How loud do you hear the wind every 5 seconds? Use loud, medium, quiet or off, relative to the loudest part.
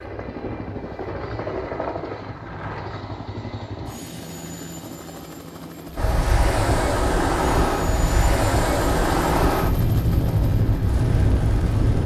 off, loud, loud.